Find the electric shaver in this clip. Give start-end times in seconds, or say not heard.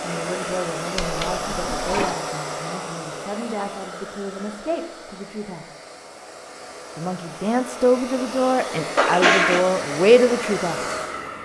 not heard.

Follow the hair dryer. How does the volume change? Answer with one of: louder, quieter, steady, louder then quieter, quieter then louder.
quieter then louder.